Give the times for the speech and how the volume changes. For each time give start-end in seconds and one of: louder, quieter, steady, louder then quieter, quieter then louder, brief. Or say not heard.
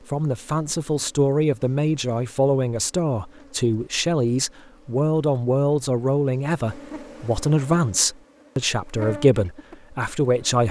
0.1-10.6 steady.